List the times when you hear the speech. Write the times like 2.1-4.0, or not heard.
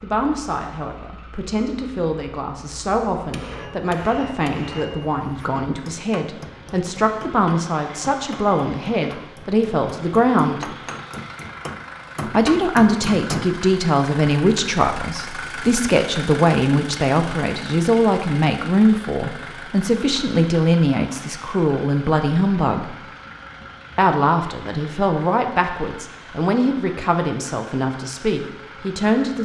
0.0-10.7, 12.2-22.9, 23.9-29.4.